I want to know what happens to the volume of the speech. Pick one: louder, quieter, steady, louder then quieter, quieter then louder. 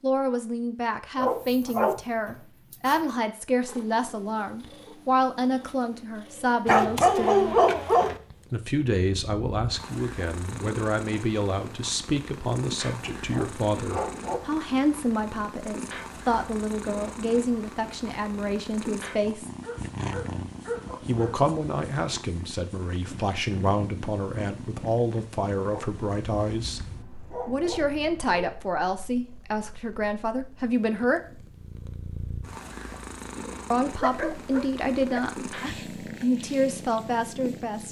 steady.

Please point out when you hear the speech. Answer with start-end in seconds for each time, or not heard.
0.0-7.5, 8.5-19.5, 21.0-31.4, 33.7-37.8.